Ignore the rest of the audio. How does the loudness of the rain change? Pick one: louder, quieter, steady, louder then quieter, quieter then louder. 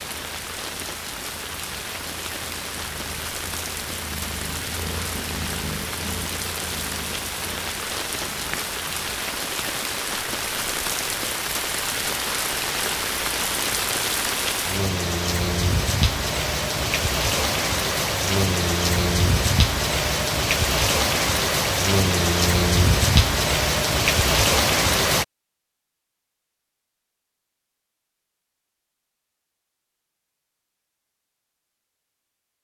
louder.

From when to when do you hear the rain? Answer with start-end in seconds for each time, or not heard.
0.0-25.2.